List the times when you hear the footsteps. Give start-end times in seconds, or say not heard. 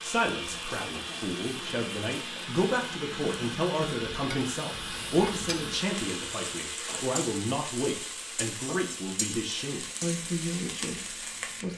not heard.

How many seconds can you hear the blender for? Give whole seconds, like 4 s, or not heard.
12 s.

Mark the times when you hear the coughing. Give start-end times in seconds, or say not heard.
not heard.